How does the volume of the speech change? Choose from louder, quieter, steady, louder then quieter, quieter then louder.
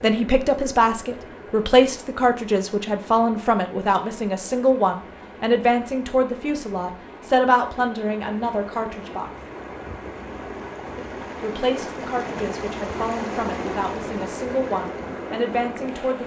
quieter.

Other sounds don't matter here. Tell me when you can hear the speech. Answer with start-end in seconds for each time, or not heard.
0.0-9.3, 10.9-16.2.